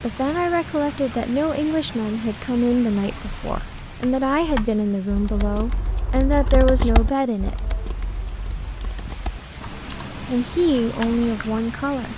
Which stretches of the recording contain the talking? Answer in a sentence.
The talking can be heard from 0.0 to 7.5 s and from 9.8 to 12.1 s.